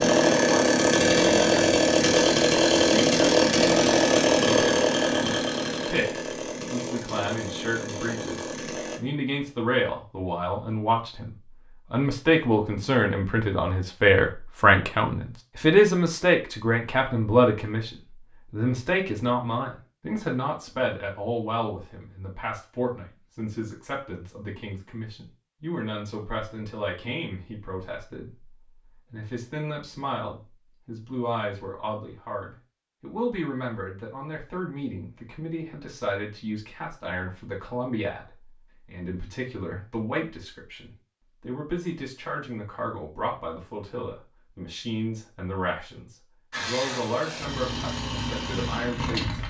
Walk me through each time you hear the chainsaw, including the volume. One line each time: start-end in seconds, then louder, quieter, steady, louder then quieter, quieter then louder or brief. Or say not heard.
0.0-9.0 quieter
46.5-49.4 brief.